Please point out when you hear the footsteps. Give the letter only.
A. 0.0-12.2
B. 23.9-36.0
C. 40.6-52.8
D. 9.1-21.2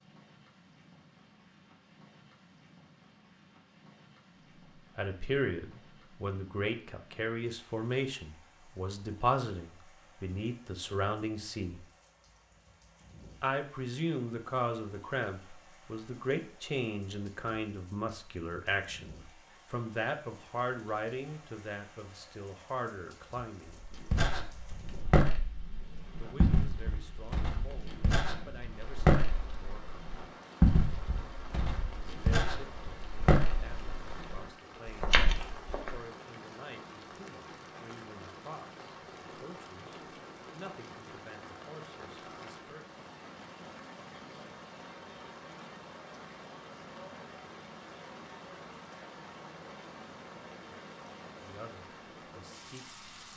B.